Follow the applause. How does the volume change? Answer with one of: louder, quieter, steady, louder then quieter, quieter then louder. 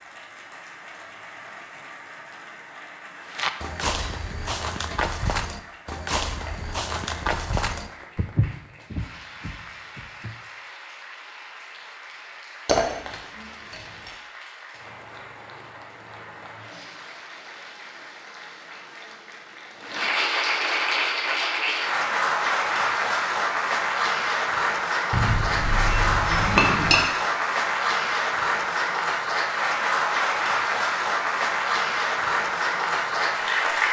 louder.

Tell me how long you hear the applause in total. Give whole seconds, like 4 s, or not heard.
34 s.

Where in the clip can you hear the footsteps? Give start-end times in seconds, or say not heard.
3.2-10.3.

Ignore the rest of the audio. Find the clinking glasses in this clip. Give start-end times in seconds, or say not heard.
4.0-5.0, 12.7-14.1, 25.1-27.0.